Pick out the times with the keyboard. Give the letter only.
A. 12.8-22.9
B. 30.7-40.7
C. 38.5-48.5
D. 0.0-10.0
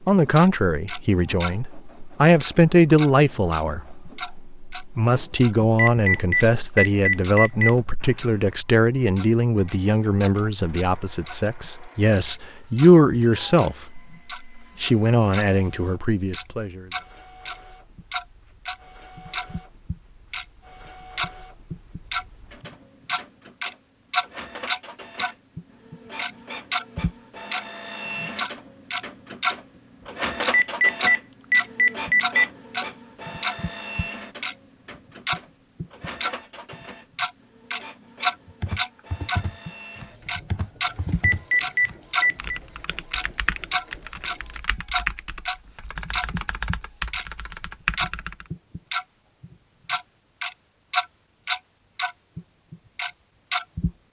C.